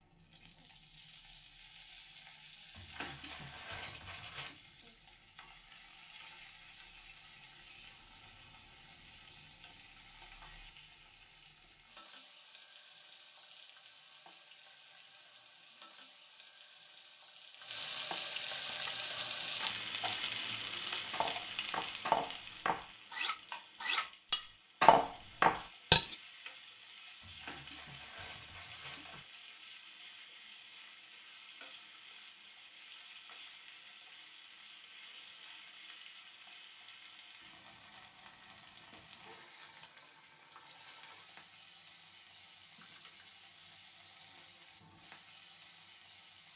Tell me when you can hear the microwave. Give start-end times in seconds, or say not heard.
not heard.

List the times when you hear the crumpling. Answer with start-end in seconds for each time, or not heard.
2.7-4.6, 27.2-29.2, 42.8-43.5.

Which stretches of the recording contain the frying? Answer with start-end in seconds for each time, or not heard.
0.0-46.5.